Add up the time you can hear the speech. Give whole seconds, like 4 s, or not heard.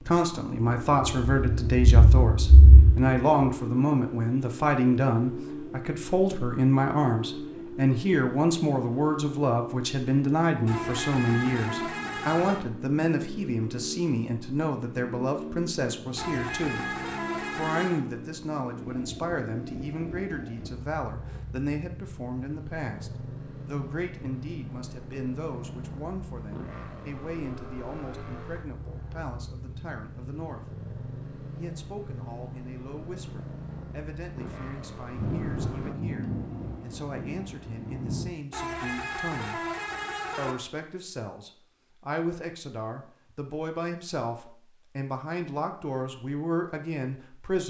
46 s.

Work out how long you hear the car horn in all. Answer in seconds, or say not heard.
6 s.